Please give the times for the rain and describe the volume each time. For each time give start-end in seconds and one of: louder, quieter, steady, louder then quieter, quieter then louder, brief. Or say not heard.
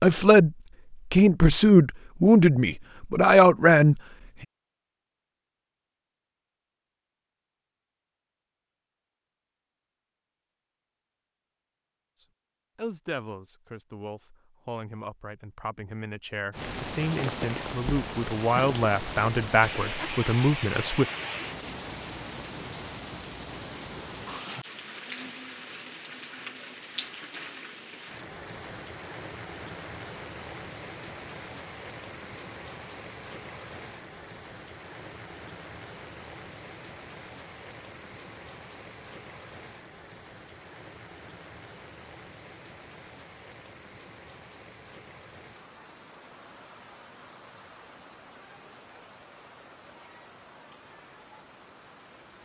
16.5-52.4 quieter.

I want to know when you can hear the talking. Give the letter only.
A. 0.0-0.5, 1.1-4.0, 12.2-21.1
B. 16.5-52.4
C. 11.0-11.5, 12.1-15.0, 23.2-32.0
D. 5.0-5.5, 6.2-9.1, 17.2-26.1
A.